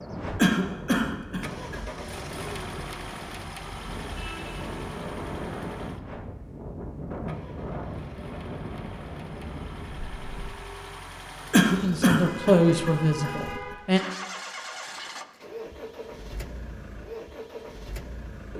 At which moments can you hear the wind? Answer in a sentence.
The wind can be heard from 0.0 to 10.6 s.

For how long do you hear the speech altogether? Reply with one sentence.
You can hear the speech for 2 seconds altogether.